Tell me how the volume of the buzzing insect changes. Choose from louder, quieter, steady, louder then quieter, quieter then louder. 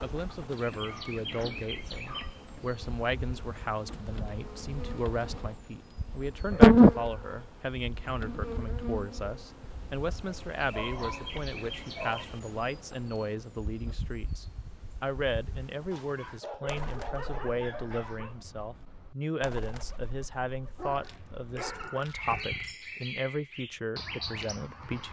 louder then quieter.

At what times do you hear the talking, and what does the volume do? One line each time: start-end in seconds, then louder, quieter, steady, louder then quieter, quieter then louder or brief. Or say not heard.
0.0-25.0 steady.